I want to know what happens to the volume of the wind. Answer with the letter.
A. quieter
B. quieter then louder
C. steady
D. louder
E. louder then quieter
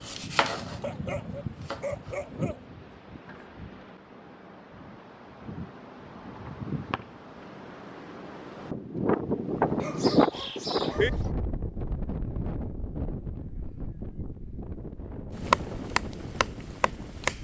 E.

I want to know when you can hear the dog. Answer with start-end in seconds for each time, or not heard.
0.8-2.6, 9.8-11.3.